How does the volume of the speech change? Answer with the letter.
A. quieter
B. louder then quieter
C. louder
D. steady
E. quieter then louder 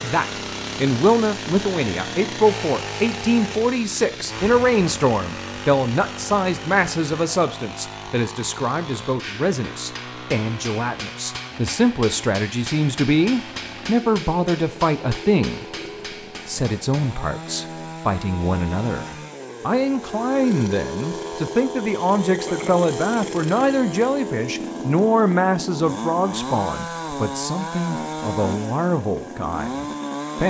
D.